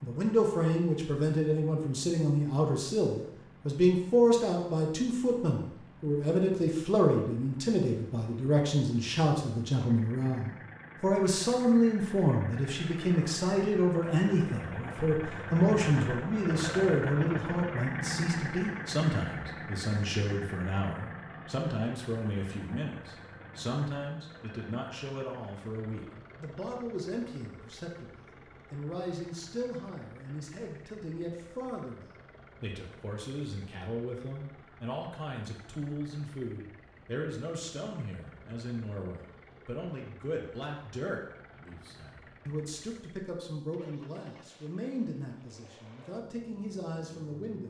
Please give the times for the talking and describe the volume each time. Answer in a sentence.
You can hear the talking from 0.0 to 47.6 s, getting quieter.